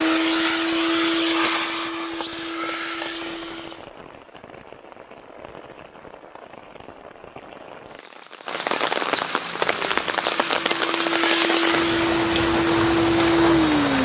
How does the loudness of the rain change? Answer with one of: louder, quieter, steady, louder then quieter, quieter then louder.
louder.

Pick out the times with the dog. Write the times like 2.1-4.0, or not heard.
not heard.